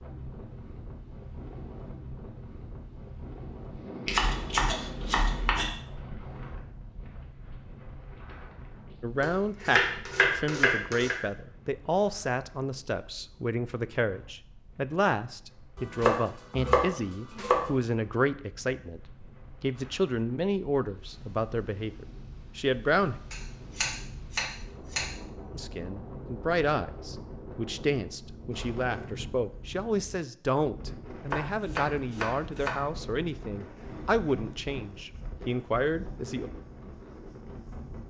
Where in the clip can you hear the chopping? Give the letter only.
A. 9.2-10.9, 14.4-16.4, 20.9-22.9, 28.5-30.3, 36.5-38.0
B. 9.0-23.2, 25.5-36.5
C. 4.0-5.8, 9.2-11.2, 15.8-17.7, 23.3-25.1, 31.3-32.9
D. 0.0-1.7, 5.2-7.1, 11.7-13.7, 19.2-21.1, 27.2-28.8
C.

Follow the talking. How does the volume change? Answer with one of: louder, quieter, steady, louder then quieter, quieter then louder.
steady.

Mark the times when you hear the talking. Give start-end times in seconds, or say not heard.
9.0-23.2, 25.5-36.5.